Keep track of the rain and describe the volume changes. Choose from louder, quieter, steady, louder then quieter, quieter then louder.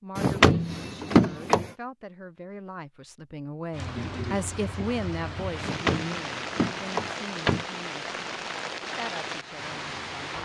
steady.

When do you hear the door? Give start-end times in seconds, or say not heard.
0.1-1.7, 5.6-7.7.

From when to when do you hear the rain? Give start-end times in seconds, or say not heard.
3.7-10.3.